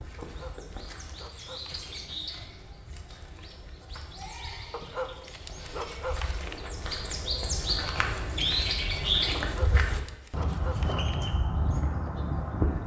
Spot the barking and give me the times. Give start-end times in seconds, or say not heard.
0.2-2.2, 4.7-6.8, 9.3-11.3.